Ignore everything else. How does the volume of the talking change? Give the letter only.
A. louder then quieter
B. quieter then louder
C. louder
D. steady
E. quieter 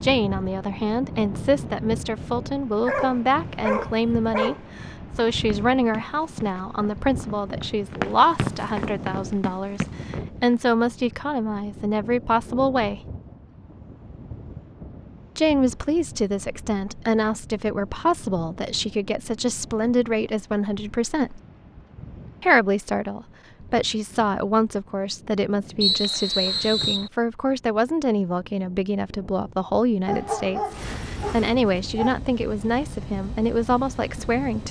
D.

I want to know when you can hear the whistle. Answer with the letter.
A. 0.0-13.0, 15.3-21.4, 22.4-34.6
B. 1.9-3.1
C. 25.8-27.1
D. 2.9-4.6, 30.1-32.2
C.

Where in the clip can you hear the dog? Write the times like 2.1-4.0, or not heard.
2.9-4.6, 30.1-32.2.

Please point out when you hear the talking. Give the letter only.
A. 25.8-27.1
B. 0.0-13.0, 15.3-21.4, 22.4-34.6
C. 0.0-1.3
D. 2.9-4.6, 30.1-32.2
B.